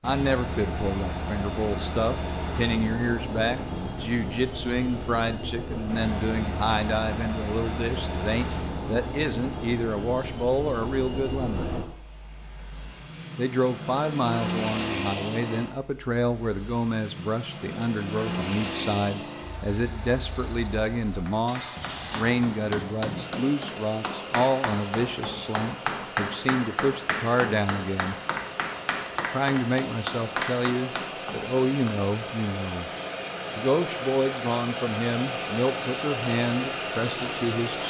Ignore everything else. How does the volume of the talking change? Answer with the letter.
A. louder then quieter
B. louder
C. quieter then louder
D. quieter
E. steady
E.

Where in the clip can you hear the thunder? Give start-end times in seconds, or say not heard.
not heard.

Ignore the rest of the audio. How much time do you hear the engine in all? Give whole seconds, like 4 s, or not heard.
38 s.